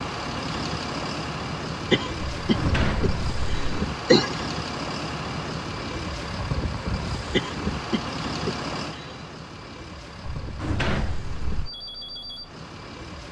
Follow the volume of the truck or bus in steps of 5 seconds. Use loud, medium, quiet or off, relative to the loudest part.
loud, loud, medium.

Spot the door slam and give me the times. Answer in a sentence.
You can hear the door slam from 2.4 to 3.8 s and from 10.4 to 11.7 s.